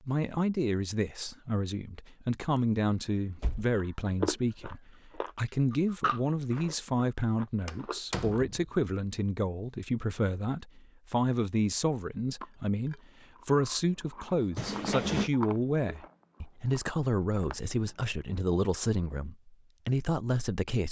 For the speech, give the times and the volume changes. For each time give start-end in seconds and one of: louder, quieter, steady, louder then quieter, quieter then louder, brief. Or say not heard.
0.1-20.8 steady.